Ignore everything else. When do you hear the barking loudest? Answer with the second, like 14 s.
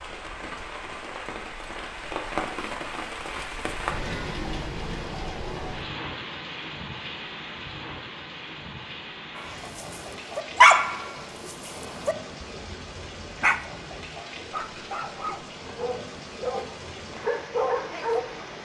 11 s.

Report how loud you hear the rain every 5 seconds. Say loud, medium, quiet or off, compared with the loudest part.
loud, loud, medium, medium.